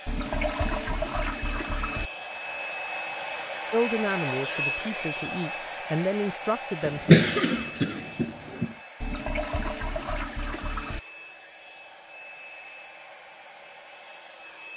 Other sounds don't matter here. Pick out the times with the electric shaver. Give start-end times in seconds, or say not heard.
not heard.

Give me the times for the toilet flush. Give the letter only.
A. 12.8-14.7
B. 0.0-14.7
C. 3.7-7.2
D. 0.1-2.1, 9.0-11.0
D.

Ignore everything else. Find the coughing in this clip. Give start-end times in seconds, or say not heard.
6.8-8.8.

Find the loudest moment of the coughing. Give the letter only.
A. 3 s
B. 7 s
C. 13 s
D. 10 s
B.